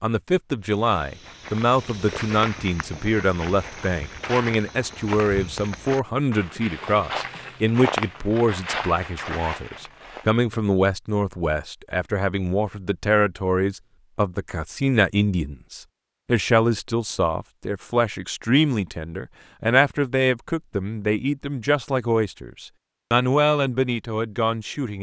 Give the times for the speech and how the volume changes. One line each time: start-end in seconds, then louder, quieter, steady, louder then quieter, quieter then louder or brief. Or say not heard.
0.0-24.9 steady.